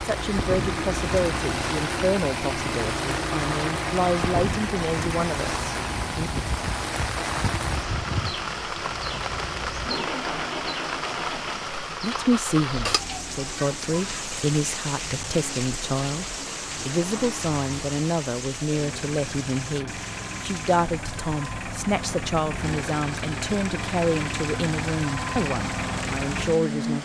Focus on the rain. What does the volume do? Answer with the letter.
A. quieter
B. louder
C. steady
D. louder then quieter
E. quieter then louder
A.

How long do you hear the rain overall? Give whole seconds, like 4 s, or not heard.
27 s.